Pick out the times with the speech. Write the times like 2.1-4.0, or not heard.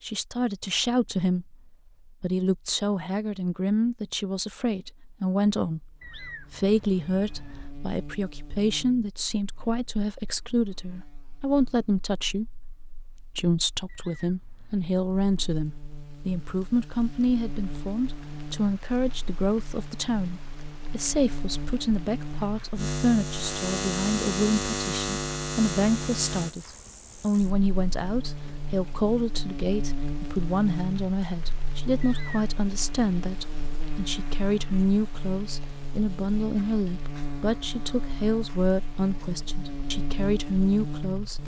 0.0-41.4.